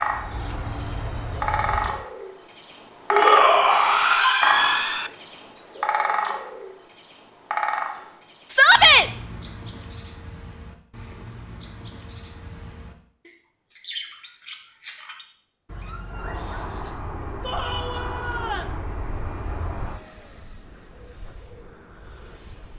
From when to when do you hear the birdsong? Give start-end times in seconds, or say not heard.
0.0-16.9.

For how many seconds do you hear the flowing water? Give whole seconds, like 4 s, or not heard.
not heard.